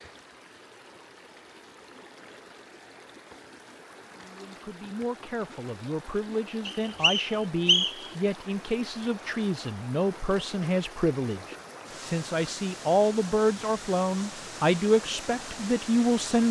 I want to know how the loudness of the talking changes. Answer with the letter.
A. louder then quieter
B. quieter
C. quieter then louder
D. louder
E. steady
D.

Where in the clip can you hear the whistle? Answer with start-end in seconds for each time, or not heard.
6.7-8.1.